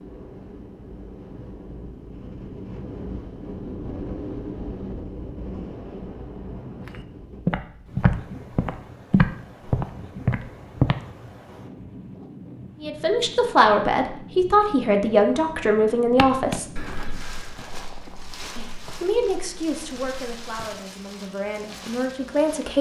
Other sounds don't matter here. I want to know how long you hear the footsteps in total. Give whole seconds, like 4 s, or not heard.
9 s.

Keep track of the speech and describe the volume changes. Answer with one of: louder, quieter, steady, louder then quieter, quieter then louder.
quieter then louder.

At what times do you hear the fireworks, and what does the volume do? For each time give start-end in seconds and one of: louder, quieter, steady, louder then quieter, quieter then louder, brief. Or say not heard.
not heard.